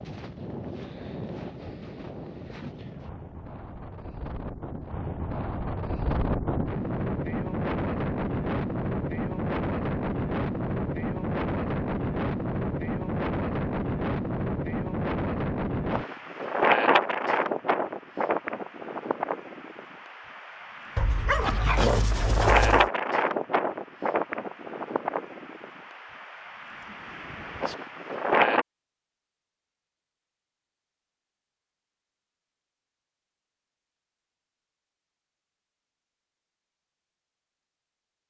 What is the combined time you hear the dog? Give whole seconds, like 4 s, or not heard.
2 s.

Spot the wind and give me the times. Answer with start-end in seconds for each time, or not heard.
0.0-28.6.